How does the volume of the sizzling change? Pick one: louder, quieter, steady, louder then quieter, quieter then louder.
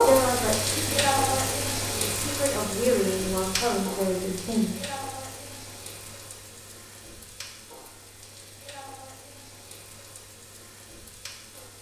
quieter.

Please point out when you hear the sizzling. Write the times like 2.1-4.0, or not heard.
0.0-11.7.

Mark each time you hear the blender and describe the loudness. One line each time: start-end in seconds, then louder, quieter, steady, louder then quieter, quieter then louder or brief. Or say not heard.
not heard.